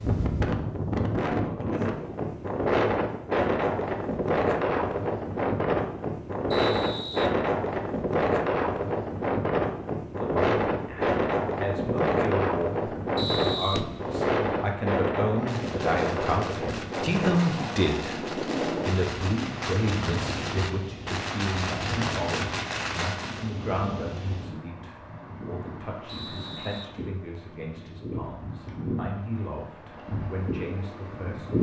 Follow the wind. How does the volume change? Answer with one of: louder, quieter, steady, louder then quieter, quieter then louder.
quieter.